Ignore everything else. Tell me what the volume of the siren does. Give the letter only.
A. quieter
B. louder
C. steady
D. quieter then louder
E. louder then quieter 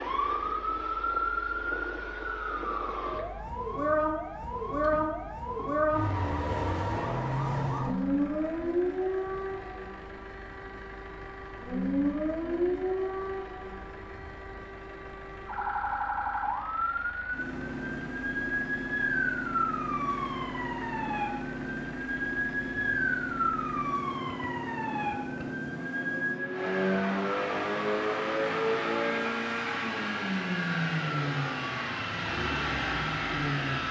A.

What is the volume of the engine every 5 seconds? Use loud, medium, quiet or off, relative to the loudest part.
quiet, quiet, quiet, quiet, quiet, loud, loud.